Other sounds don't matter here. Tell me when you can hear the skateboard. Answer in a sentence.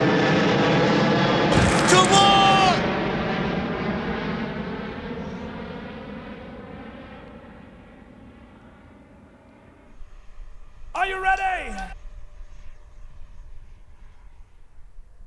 You can't hear the skateboard here.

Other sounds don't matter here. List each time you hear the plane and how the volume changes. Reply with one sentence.
The plane can be heard from 0.0 to 15.2 s, getting quieter.